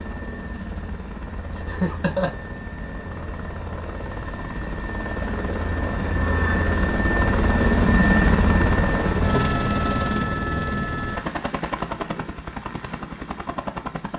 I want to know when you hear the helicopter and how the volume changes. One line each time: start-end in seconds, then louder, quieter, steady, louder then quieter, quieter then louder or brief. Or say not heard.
0.0-14.1 louder then quieter.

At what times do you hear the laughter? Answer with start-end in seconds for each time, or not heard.
1.6-2.3.